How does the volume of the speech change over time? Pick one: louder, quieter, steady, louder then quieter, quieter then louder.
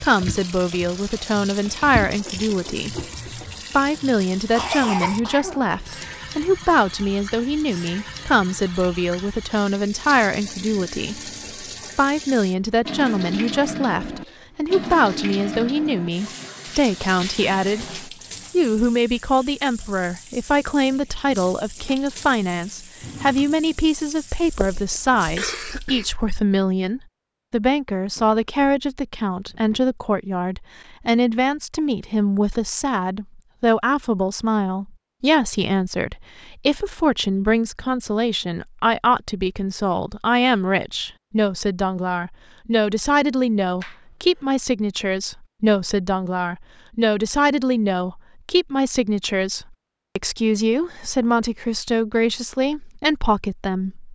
steady.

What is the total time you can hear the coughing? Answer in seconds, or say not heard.
4 s.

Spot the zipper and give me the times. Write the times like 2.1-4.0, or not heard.
not heard.